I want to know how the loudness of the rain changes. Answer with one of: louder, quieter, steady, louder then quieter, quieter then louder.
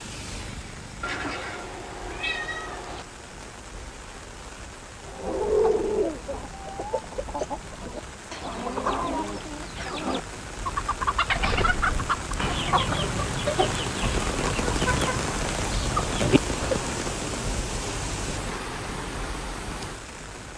louder.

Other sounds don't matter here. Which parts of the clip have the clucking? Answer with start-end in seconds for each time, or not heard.
5.0-16.9.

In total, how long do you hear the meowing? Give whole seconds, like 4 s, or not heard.
2 s.